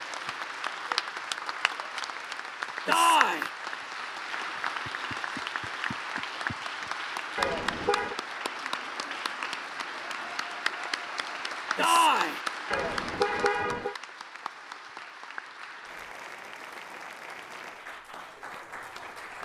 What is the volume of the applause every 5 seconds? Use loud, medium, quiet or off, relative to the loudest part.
loud, loud, loud, medium.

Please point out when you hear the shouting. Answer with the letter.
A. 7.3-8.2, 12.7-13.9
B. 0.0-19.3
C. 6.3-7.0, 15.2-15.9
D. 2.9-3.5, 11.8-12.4
D.